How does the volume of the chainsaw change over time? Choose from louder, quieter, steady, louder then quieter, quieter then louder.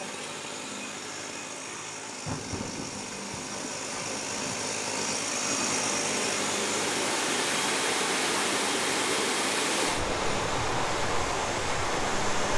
louder then quieter.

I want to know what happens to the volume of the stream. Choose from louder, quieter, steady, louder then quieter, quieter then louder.
louder.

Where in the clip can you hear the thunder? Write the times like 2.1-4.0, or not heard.
2.1-4.7.